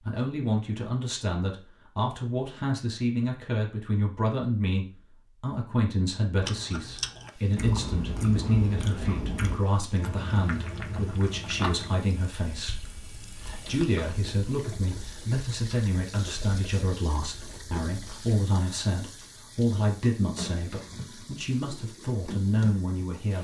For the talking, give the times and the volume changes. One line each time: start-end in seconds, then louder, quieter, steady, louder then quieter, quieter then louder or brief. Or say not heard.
0.1-23.3 steady.